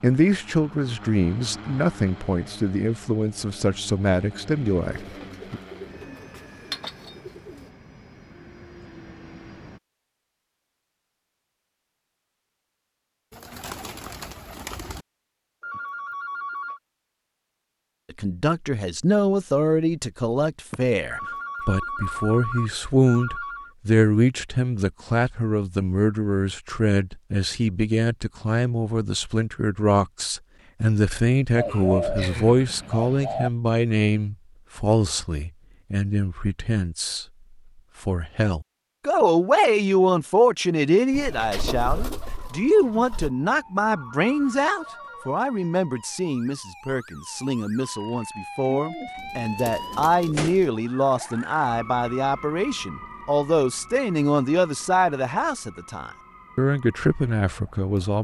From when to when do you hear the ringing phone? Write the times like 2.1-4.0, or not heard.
15.6-16.8, 21.1-23.8, 43.8-45.4.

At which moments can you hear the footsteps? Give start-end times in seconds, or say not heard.
not heard.